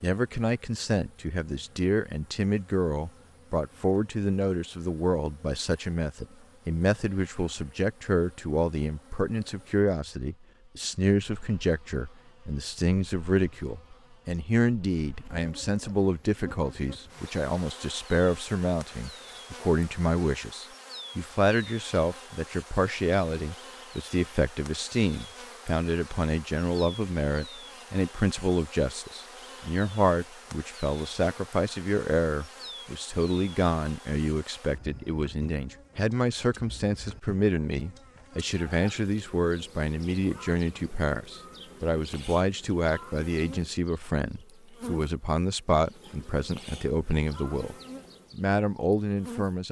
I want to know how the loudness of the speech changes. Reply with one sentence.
The volume of the speech stays about the same.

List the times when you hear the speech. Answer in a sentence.
You can hear the speech from 0.0 to 49.6 s.